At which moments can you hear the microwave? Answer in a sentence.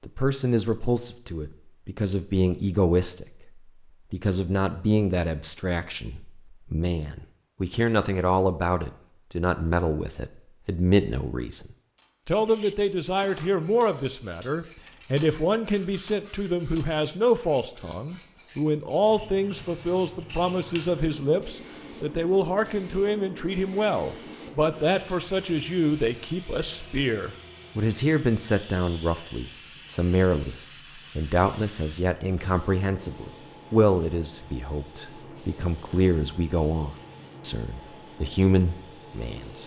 You can't hear the microwave here.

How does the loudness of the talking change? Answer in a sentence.
The volume of the talking stays about the same.